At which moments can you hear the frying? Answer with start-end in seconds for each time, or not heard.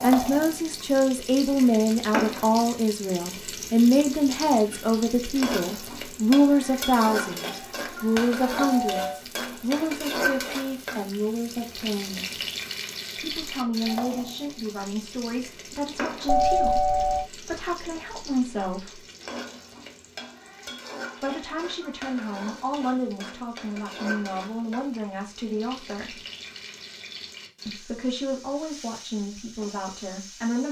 0.0-30.6.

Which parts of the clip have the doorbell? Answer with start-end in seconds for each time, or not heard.
8.7-9.2, 16.2-17.2.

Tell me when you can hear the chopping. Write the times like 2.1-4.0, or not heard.
not heard.